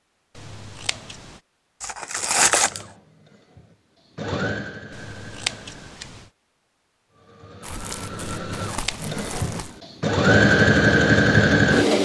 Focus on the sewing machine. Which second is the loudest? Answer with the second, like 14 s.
11 s.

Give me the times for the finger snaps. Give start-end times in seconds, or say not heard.
not heard.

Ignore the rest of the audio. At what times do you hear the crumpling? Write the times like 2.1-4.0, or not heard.
1.8-2.9, 7.6-9.8.